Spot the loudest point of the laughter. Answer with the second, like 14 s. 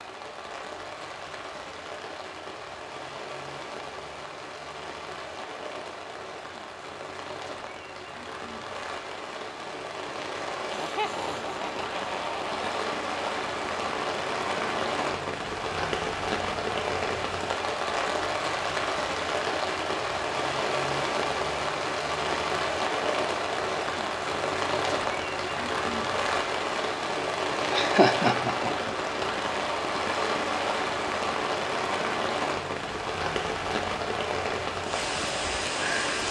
28 s.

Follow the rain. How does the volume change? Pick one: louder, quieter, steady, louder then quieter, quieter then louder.
louder.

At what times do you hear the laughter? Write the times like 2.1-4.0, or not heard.
10.7-12.8, 27.7-28.9.